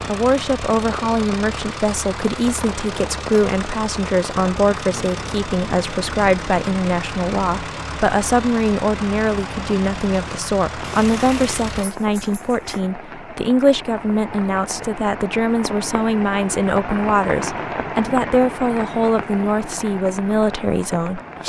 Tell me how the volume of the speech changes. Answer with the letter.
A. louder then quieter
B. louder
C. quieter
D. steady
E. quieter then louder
D.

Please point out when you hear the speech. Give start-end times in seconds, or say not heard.
0.1-21.4.